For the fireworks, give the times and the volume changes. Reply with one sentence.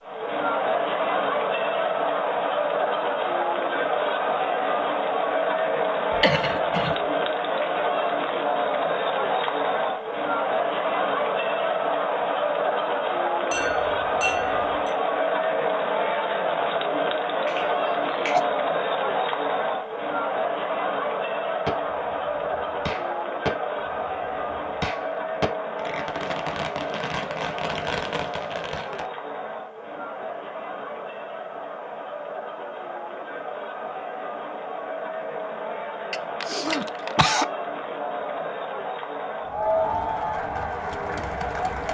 The fireworks can be heard from 21.6 to 29.1 s, getting louder.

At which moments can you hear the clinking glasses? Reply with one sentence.
The clinking glasses can be heard from 13.5 to 14.9 s.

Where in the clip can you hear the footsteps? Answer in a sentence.
The footsteps can't be heard in this clip.